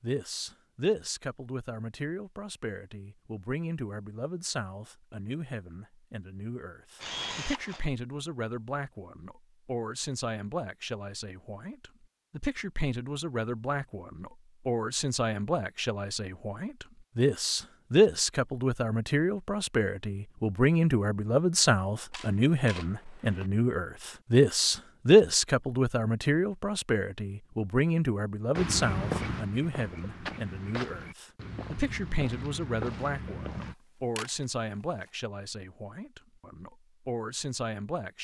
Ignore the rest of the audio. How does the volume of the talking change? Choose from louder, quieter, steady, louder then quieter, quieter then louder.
louder then quieter.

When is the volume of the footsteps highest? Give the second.
29 s.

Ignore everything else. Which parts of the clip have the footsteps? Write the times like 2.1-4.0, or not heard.
28.6-33.8.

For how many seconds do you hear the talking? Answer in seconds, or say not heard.
38 s.